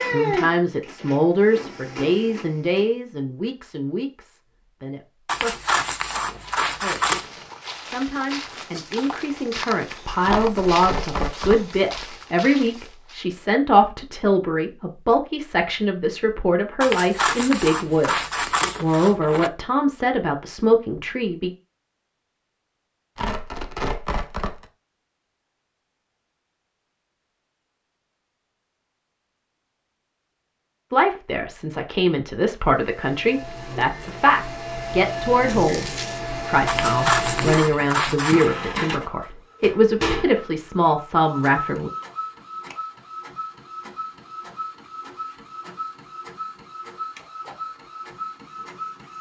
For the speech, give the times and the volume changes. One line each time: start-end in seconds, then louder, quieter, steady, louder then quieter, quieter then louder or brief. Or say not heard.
0.0-21.5 quieter then louder
30.9-41.9 steady.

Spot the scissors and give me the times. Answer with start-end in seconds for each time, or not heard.
5.2-7.3, 16.8-19.5, 36.6-38.5.